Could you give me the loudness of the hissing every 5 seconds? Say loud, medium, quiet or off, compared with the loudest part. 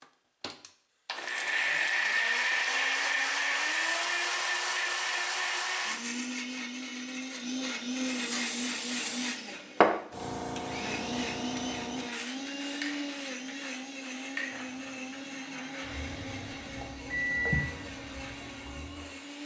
off, loud, medium, quiet.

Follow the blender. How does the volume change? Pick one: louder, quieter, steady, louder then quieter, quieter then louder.
quieter.